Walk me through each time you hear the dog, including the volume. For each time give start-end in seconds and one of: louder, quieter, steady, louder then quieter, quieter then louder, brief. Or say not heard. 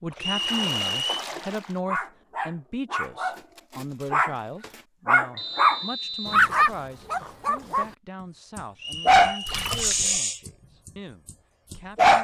1.9-7.8 louder
8.6-10.5 brief
11.2-12.1 brief.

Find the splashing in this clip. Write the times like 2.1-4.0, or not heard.
0.1-1.8, 9.4-10.2.